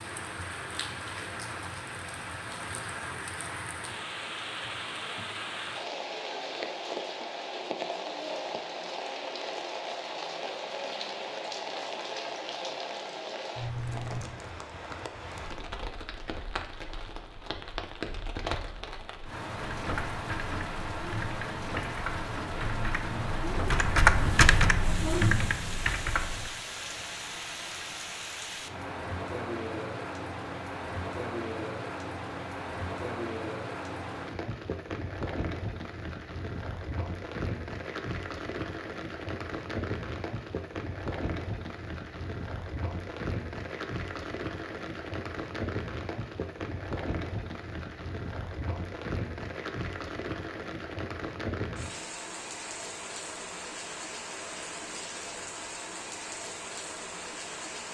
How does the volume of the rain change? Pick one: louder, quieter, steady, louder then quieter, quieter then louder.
steady.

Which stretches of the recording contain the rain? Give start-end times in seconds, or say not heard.
0.0-57.8.